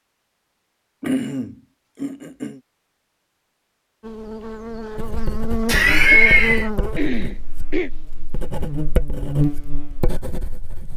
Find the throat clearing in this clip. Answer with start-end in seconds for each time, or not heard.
1.0-2.6, 7.0-7.9.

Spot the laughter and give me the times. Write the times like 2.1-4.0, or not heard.
5.7-6.7.